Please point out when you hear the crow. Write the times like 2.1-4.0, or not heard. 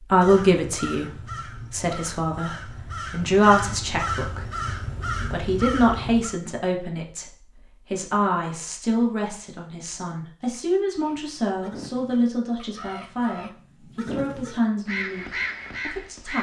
0.1-6.3, 10.9-16.3.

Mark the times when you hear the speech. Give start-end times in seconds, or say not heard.
0.0-15.2, 15.8-16.3.